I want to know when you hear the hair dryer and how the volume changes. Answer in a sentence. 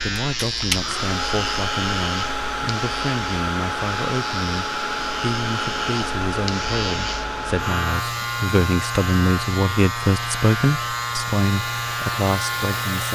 You can hear the hair dryer from 0.0 to 13.0 s, getting quieter.